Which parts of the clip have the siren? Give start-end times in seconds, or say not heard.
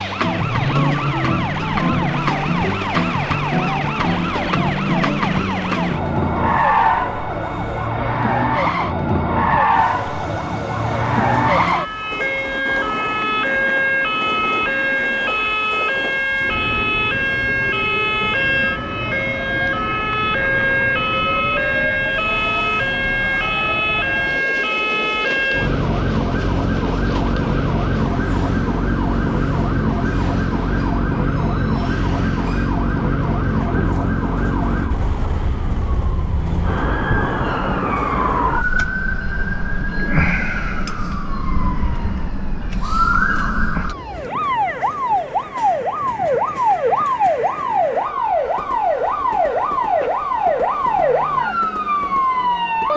0.0-52.9.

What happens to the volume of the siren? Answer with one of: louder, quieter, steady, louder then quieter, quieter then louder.
steady.